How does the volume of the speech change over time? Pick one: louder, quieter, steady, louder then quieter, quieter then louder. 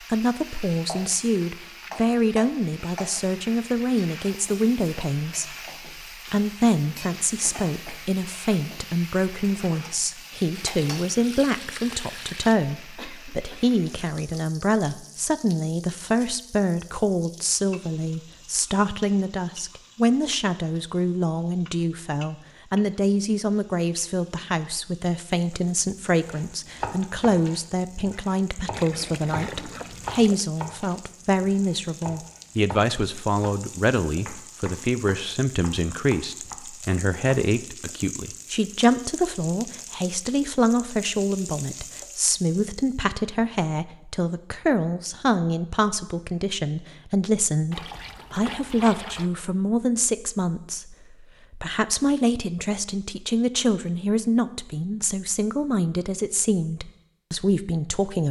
steady.